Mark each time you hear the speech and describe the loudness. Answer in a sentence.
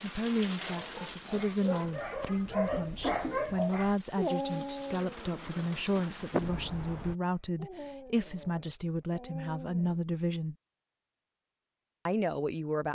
You can hear the speech from 0.0 to 10.6 s, at a steady volume; and briefly from 12.1 to 12.8 s.